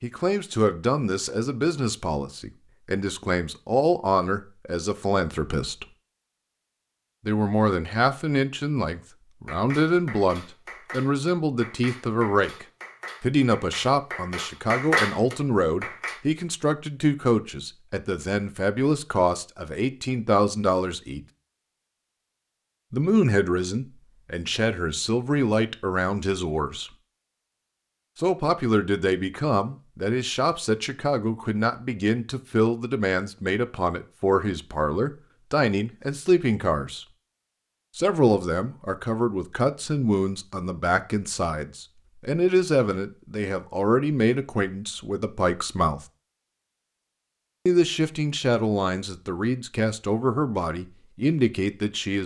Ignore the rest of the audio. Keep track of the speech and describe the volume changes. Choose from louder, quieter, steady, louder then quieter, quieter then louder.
steady.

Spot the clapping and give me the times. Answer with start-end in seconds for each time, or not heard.
9.4-16.2.